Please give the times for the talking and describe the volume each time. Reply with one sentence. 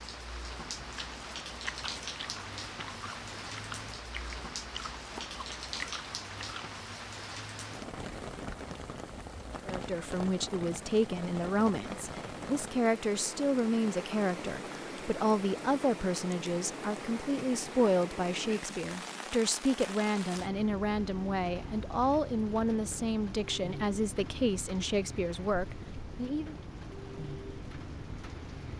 The talking can be heard from 9.7 to 26.6 s, at a steady volume.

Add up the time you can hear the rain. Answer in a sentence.
The rain can be heard for 29 seconds in total.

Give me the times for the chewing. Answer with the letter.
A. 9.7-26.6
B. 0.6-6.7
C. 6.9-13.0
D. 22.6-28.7
B.